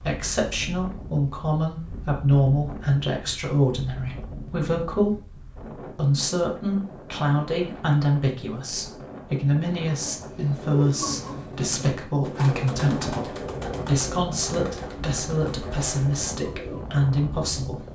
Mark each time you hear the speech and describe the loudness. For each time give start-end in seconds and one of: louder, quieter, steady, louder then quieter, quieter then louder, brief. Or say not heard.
0.0-17.8 steady.